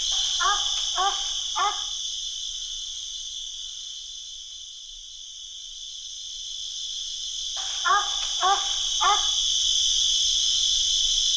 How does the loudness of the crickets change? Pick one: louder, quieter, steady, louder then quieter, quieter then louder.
quieter then louder.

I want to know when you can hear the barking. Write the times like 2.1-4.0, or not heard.
0.1-1.8, 7.5-9.2.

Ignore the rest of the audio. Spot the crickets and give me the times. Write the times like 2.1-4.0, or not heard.
0.0-11.3.